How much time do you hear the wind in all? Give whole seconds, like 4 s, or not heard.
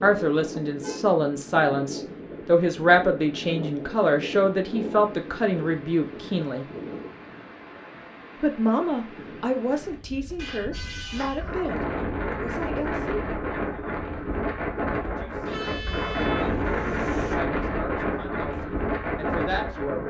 20 s.